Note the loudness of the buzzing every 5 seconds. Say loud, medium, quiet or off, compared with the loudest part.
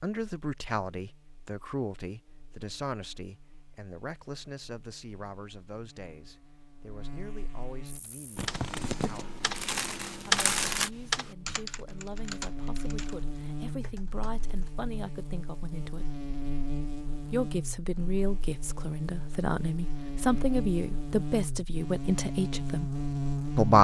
quiet, quiet, medium, medium, loud.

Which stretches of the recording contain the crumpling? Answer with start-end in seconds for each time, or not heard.
8.3-10.9.